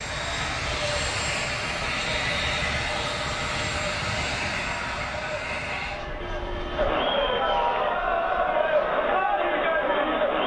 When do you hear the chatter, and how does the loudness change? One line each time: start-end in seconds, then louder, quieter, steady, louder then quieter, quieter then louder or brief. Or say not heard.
0.0-10.4 louder.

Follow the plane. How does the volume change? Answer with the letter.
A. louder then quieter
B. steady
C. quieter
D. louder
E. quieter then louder
C.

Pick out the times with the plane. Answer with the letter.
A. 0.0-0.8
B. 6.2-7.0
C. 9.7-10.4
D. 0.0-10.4
D.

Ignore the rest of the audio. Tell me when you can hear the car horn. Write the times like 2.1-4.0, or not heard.
6.2-7.0.